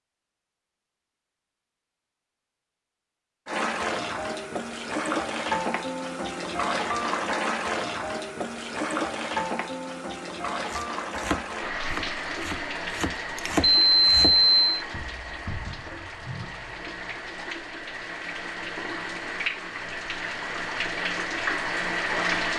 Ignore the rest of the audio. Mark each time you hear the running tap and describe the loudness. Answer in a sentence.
The running tap can be heard from 3.5 to 22.5 s, getting quieter then louder.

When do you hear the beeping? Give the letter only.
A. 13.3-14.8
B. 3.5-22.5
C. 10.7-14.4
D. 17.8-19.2
A.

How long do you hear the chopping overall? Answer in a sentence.
The chopping can be heard for 4 seconds in total.